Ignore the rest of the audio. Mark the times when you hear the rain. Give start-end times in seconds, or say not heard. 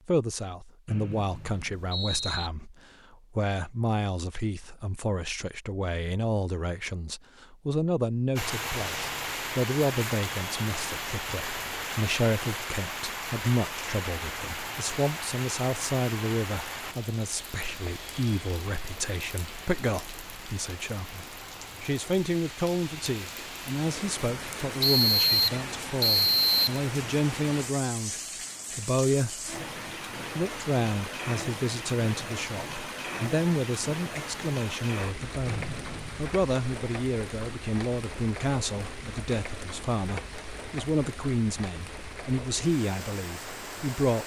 8.3-44.2.